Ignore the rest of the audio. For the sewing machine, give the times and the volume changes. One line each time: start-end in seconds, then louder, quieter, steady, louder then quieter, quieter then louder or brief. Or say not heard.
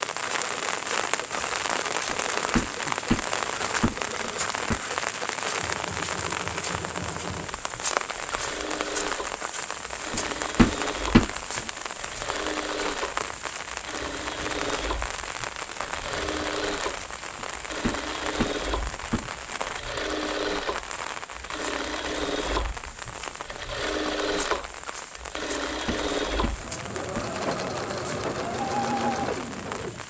0.0-30.0 louder.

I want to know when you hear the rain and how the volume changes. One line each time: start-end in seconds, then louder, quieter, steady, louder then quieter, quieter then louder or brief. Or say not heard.
0.0-30.0 quieter.